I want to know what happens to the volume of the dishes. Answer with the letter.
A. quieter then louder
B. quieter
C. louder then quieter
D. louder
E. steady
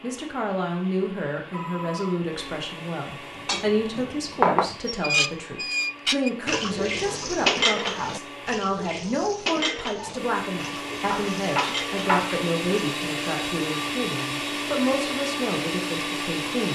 B.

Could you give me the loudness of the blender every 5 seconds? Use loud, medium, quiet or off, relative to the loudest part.
quiet, quiet, loud, loud.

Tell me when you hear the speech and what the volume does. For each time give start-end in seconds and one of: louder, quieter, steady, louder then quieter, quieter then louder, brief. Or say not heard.
0.0-16.7 steady.